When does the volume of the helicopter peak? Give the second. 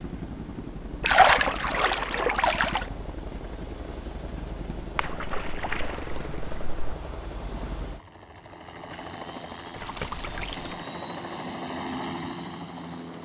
12 s.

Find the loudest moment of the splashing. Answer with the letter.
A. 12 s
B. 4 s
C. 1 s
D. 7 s
C.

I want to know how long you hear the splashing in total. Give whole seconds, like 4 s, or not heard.
5 s.